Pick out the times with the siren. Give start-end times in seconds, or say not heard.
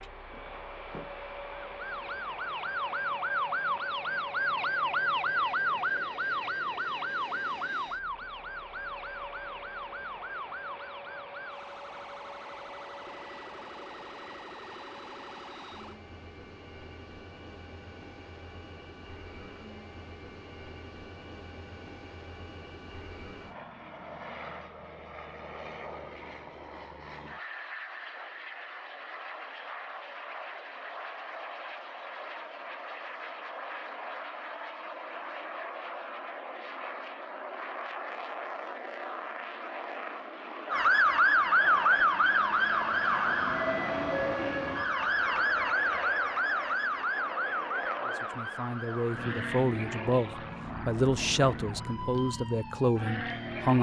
0.0-16.0, 40.7-53.7.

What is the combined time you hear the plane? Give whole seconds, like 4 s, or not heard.
54 s.